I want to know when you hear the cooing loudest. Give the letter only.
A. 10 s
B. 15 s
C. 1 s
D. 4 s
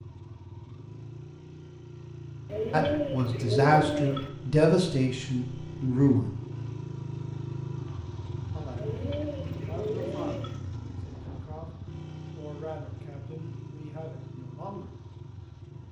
D.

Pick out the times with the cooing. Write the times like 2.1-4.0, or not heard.
2.5-4.3, 8.8-10.6.